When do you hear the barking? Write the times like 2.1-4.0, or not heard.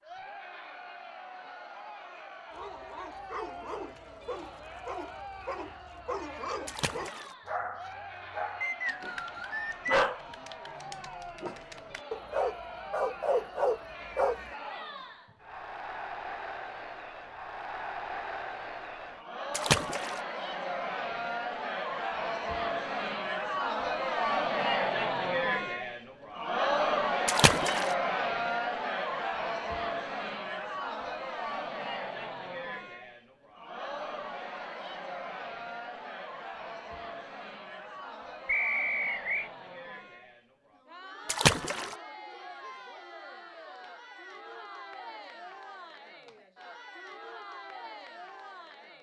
2.5-14.6.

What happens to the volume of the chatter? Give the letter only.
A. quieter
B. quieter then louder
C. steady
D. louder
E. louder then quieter
E.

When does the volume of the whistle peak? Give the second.
39 s.